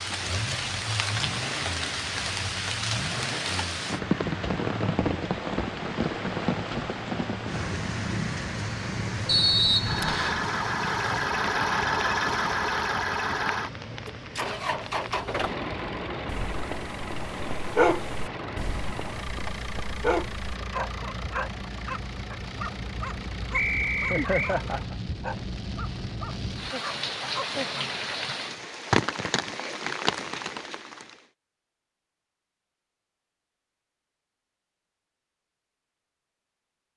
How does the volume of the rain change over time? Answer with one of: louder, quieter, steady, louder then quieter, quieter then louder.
quieter then louder.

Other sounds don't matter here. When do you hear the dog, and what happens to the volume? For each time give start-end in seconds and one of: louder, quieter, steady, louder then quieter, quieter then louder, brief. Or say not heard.
16.2-27.8 quieter.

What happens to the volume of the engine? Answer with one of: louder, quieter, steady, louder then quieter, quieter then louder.
louder then quieter.